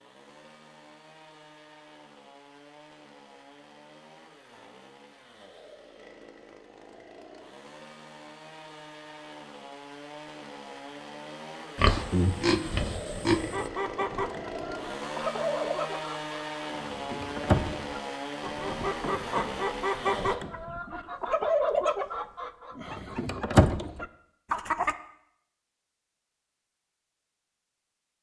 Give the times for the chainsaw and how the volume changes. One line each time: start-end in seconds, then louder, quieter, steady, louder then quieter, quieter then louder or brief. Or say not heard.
0.0-20.4 louder.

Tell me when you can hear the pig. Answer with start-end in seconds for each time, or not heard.
11.8-13.7.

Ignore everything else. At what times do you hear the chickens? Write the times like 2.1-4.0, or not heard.
13.4-24.9.